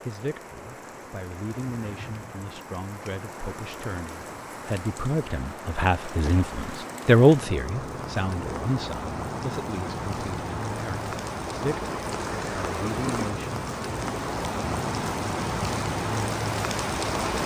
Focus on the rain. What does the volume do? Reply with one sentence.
The volume of the rain goes up.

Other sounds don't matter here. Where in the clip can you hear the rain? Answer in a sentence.
You can hear the rain from 0.0 to 17.4 s.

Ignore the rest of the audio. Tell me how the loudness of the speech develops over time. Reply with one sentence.
The loudness of the speech goes up, then down.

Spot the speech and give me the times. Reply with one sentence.
The speech can be heard from 0.1 to 13.6 s.